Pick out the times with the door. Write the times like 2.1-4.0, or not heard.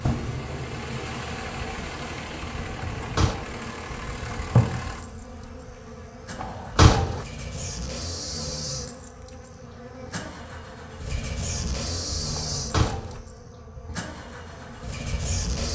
3.0-3.5, 6.4-7.2, 12.3-13.2.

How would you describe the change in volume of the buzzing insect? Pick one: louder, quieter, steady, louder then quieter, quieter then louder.
louder then quieter.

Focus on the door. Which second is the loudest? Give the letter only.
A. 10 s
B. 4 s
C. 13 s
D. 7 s
D.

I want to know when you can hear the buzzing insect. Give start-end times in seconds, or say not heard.
0.0-15.6.